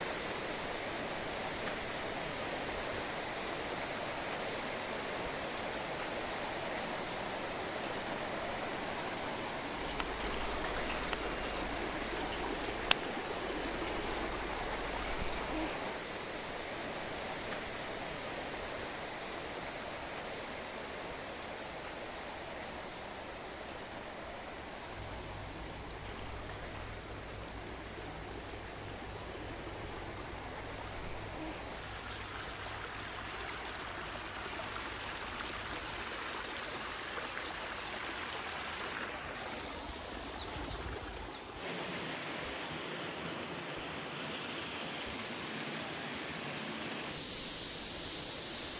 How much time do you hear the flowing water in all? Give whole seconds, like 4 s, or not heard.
49 s.